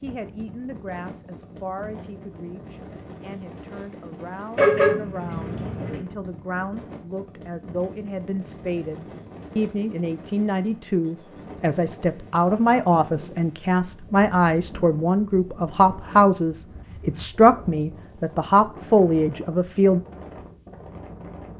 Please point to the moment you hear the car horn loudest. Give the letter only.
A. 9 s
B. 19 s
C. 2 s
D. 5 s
D.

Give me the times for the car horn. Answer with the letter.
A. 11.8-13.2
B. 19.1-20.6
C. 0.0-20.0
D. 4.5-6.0
D.